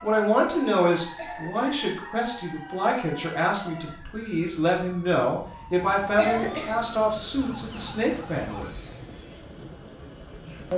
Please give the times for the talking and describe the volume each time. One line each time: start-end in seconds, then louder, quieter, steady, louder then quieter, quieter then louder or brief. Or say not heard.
0.0-8.7 steady.